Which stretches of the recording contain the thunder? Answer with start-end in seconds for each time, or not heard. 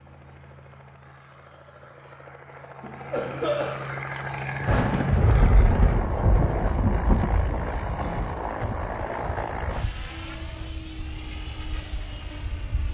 4.7-7.7.